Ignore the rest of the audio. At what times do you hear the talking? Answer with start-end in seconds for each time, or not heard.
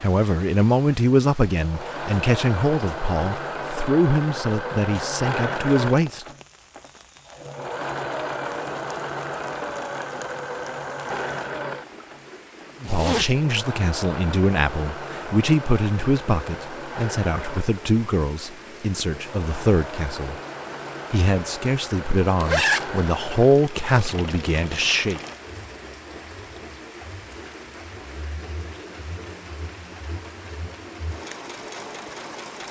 0.0-6.2, 12.8-20.4, 21.1-25.2.